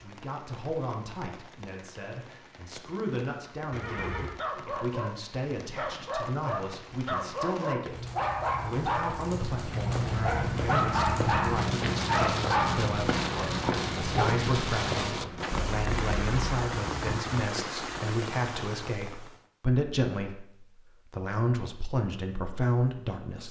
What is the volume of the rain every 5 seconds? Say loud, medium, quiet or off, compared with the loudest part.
quiet, medium, loud, loud, off.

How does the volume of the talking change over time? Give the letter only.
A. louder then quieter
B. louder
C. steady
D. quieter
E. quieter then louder
B.